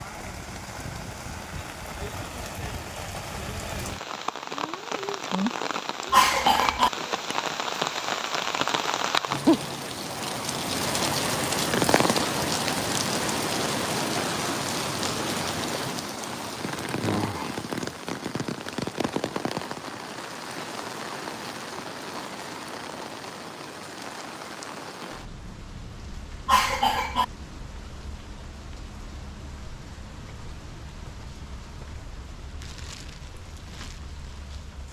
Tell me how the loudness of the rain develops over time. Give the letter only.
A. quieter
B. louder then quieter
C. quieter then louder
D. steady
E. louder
B.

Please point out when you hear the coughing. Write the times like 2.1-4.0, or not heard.
6.1-6.9, 26.4-27.2.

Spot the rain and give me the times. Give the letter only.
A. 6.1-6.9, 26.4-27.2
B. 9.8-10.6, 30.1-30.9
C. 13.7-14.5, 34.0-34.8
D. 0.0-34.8
D.